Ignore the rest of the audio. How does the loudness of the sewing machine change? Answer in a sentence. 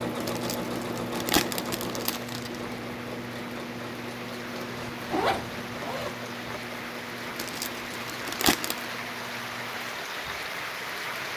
The volume of the sewing machine goes down.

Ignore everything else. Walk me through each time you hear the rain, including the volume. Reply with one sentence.
The rain can be heard from 0.0 to 11.3 s, getting louder.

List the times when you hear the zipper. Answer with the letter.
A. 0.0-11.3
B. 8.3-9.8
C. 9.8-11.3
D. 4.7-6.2
D.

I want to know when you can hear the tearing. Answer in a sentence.
The tearing can be heard from 0.2 to 2.6 s and from 7.3 to 8.8 s.